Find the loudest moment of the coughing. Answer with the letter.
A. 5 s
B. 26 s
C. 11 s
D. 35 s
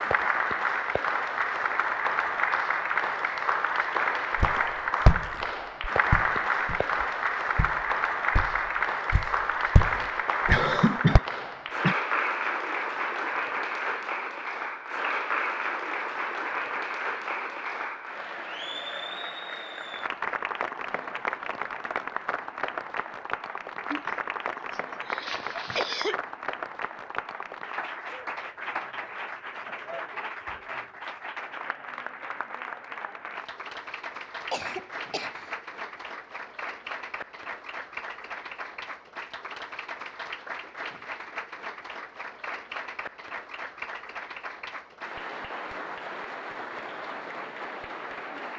C.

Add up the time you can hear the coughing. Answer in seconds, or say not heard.
5 s.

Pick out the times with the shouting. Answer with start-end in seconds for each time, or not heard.
not heard.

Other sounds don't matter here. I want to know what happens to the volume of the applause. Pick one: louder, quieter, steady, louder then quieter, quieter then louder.
quieter.